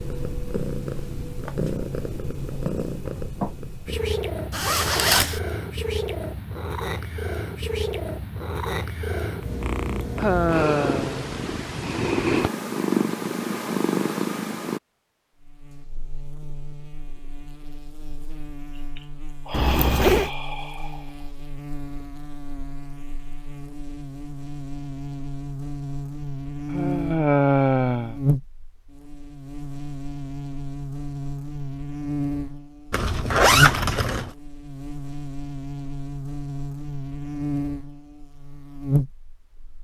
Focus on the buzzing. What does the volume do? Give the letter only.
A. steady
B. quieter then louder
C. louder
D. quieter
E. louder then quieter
C.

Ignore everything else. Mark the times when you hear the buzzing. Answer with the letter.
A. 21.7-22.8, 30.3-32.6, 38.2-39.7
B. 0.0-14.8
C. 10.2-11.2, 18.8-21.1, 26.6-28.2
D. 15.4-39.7
D.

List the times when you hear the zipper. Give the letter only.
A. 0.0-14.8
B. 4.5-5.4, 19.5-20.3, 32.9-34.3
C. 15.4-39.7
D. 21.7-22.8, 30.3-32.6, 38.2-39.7
B.